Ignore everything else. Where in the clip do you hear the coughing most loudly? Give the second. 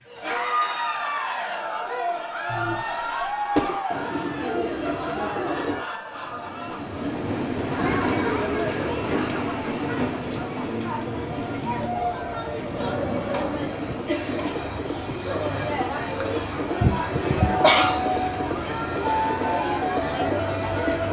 18 s.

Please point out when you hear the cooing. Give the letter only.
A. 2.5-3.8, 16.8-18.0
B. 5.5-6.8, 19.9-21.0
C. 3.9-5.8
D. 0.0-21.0
C.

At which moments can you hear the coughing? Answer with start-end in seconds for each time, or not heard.
2.5-3.8, 16.8-18.0.